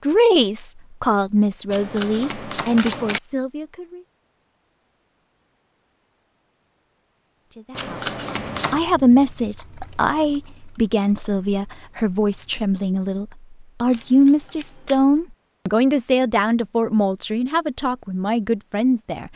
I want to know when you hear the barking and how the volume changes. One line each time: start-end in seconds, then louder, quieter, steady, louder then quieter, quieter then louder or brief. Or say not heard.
not heard.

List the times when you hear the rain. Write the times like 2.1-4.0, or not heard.
not heard.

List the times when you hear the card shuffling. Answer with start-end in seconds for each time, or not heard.
1.6-3.2, 7.8-8.8, 13.9-15.0.